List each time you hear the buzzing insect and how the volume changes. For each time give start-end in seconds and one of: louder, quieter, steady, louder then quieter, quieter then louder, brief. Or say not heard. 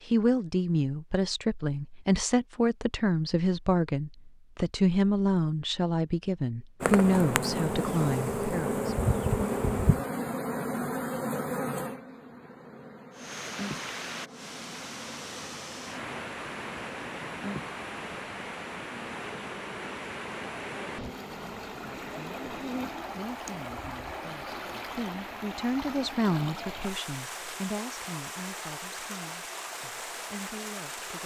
6.8-22.9 quieter.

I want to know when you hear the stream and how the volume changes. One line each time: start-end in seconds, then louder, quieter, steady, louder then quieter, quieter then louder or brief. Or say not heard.
13.1-31.2 steady.